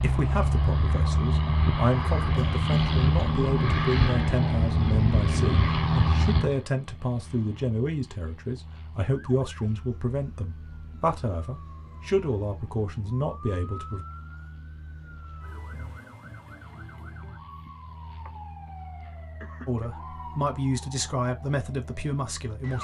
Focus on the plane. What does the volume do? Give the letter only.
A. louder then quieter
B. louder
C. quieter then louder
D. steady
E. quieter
E.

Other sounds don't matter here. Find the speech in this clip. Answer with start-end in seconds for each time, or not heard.
0.0-14.1, 19.6-22.7.